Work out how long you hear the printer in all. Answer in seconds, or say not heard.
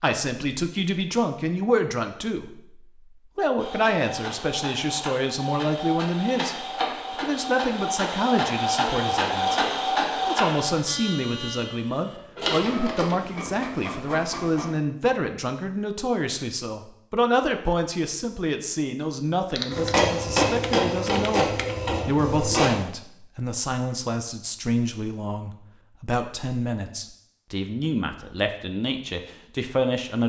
14 s.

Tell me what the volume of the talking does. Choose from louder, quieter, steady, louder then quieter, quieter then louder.
steady.